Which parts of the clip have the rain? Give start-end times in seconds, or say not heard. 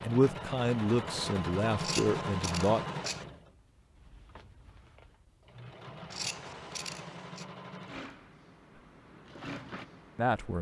not heard.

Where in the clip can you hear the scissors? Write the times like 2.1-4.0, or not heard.
1.8-3.2, 6.1-7.5.